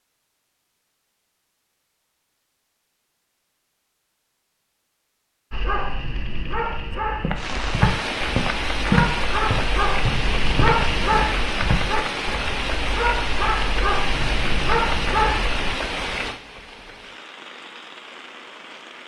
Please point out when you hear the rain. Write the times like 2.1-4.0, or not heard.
7.3-19.0.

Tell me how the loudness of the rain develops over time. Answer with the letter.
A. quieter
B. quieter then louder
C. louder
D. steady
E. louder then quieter
A.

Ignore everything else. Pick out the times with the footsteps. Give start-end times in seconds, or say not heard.
6.9-11.8.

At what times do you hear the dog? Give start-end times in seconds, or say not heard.
5.5-15.8.